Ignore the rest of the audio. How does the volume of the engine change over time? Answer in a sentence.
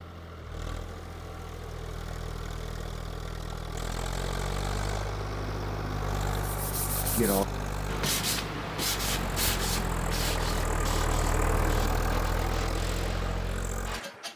The volume of the engine goes up.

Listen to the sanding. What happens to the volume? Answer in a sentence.
The loudness of the sanding goes down.